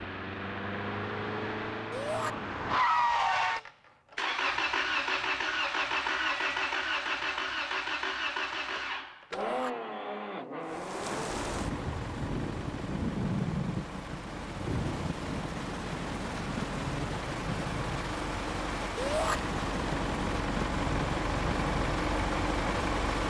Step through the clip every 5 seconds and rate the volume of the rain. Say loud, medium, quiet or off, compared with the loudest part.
off, off, loud, loud, loud.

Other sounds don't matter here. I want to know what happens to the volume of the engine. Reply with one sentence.
The loudness of the engine goes down, then up.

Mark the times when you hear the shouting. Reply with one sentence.
The shouting can be heard from 1.9 to 2.4 s, from 9.3 to 9.8 s and from 18.9 to 19.4 s.